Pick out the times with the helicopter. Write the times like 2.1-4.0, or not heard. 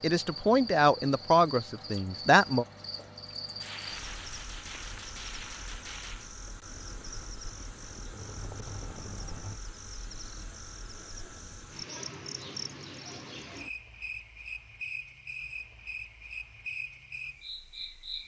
6.7-9.6.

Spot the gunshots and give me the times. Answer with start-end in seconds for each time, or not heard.
3.6-6.3.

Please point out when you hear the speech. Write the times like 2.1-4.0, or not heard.
0.0-2.6.